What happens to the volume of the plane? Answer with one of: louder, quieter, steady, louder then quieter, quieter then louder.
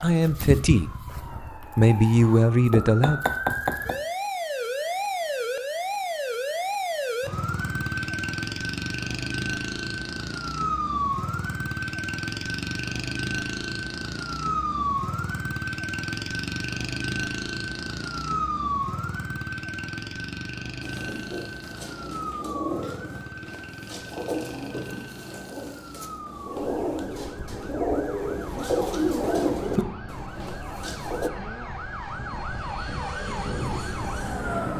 louder.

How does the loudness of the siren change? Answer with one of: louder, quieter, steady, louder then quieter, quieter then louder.
quieter.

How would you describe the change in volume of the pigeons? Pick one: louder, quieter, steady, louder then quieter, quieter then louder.
louder.